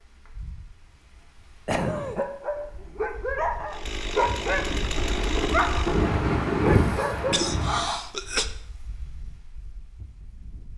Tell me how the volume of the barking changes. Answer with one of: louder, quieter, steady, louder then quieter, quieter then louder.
steady.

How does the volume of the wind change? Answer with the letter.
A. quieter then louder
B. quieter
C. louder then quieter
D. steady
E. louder
C.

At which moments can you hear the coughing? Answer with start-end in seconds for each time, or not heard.
1.6-2.2, 7.3-8.4.